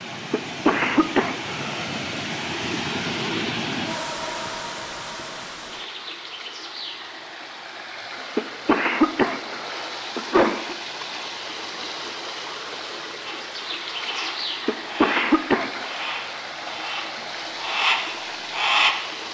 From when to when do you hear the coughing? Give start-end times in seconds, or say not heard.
0.3-2.1, 8.3-10.8, 14.7-15.8.